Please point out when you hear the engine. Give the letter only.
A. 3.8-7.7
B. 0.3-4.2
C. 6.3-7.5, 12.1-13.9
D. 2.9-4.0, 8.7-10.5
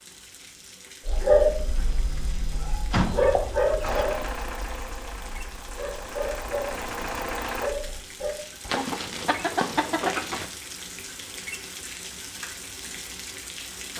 A.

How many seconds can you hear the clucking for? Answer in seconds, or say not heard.
3 s.